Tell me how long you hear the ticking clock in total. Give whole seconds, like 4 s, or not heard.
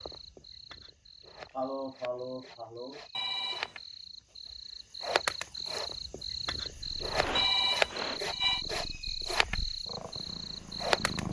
not heard.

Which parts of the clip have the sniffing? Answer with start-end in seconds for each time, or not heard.
1.5-3.0, 7.1-8.2.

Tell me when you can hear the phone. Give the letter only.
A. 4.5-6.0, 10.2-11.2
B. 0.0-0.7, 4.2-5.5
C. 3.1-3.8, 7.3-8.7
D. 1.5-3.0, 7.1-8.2
C.